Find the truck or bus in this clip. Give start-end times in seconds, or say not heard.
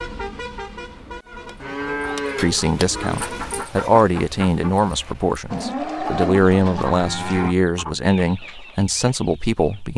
0.0-3.7.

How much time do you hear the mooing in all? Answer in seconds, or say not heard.
4 s.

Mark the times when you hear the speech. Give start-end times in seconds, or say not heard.
2.4-9.9.